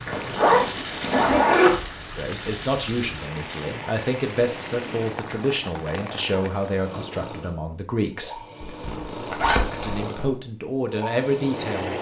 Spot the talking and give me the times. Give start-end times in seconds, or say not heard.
2.1-8.4, 9.8-11.9.